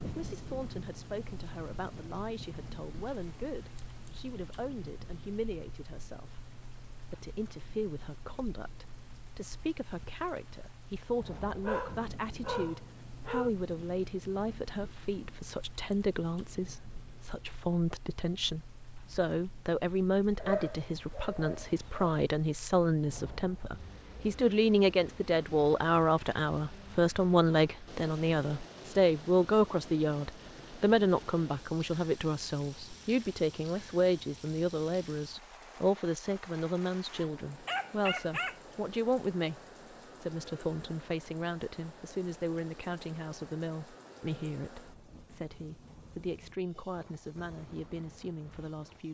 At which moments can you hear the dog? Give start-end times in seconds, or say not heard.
11.6-13.5, 20.4-22.1, 37.0-38.5.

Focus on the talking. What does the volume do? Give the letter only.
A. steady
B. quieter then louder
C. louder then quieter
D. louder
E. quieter
C.